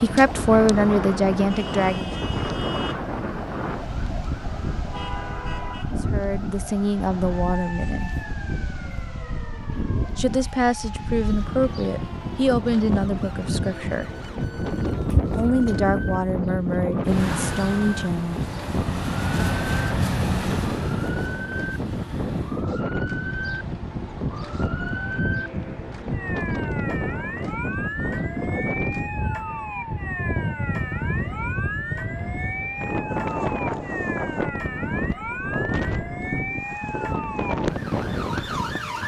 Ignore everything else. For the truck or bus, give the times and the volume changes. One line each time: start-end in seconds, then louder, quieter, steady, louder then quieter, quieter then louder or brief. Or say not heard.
17.1-22.7 louder then quieter.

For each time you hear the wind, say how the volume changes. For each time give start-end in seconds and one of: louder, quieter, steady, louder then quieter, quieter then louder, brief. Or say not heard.
0.0-39.0 steady.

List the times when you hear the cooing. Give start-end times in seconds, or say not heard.
14.7-16.2.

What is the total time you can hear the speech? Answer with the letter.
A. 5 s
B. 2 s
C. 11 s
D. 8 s
C.